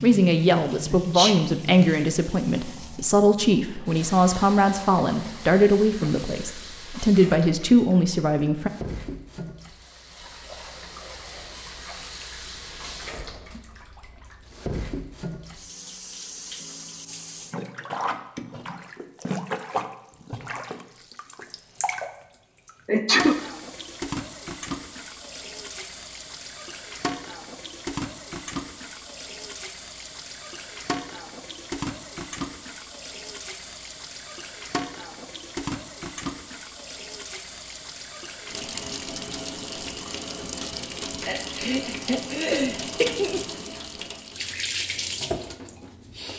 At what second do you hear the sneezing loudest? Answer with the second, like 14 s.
23 s.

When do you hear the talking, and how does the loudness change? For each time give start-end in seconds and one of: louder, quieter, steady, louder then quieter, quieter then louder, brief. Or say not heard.
0.0-8.7 steady.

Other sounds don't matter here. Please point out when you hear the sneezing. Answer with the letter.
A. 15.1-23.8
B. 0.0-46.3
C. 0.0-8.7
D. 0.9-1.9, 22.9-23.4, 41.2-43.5
D.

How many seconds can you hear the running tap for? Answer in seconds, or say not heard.
46 s.